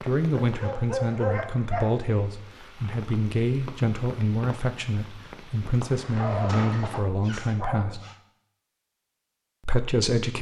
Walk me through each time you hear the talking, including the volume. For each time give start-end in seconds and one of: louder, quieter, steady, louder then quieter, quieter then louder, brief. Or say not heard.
0.0-8.0 steady
9.7-10.3 brief.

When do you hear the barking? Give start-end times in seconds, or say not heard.
0.4-2.0, 5.5-8.2.